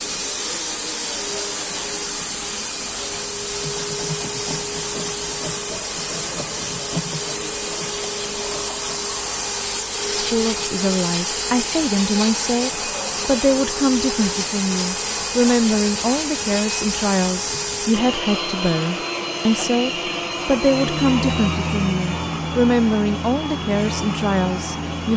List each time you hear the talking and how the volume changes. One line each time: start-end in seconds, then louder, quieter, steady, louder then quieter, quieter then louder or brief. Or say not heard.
10.1-25.1 steady.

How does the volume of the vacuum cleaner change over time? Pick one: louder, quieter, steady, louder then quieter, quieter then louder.
steady.